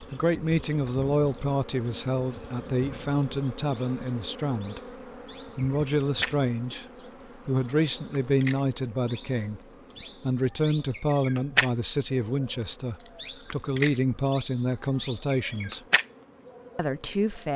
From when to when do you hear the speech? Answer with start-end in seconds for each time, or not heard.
0.0-4.8, 5.5-6.8, 7.5-15.8, 16.8-17.5.